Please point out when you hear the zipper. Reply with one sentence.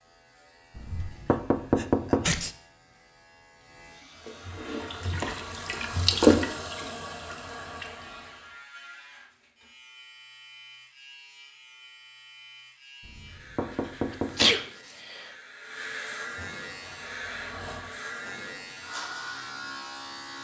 The zipper can't be heard in this clip.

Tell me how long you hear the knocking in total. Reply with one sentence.
You can hear the knocking for 3 seconds altogether.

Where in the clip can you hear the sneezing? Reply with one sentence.
The sneezing can be heard from 1.1 to 2.5 s and from 14.3 to 15.2 s.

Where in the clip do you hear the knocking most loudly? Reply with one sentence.
The loudest moment of the knocking is at 2 seconds.